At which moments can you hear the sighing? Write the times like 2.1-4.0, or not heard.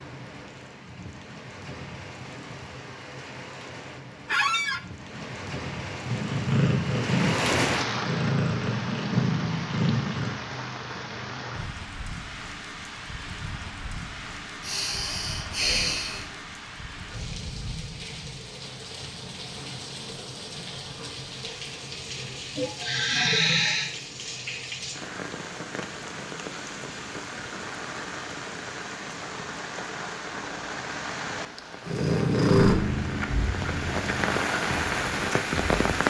14.6-16.4, 22.6-23.9.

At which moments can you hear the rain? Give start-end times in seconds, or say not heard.
0.0-36.0.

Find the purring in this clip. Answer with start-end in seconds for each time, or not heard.
6.0-10.3, 31.9-35.8.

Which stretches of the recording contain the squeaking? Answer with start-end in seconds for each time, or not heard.
4.2-4.8.